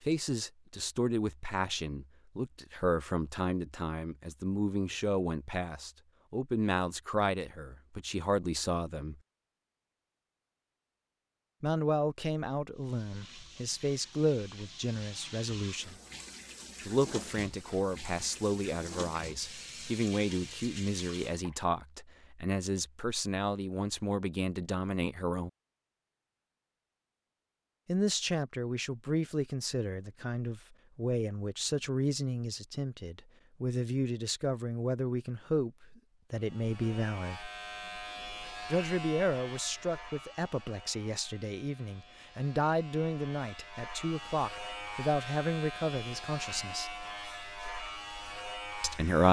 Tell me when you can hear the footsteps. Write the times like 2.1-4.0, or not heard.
not heard.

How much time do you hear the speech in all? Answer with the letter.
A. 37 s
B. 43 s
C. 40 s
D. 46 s
C.